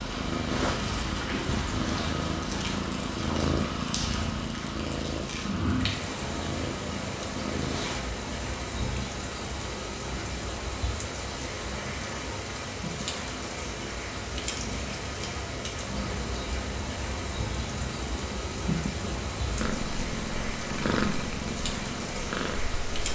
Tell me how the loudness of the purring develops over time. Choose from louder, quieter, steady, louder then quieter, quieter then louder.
quieter then louder.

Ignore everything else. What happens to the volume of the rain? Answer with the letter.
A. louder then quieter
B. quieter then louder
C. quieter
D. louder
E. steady
E.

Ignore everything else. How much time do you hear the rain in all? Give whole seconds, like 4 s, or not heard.
23 s.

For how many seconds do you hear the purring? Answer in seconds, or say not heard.
23 s.